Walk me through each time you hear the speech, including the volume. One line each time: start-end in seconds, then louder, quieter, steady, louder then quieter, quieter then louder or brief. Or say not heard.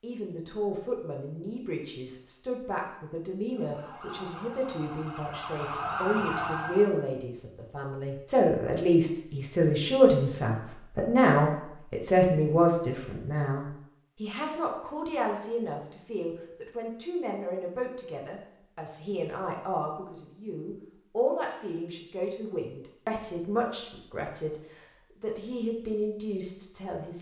0.0-27.1 louder then quieter.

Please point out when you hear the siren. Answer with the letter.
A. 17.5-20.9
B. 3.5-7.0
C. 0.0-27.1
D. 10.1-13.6
B.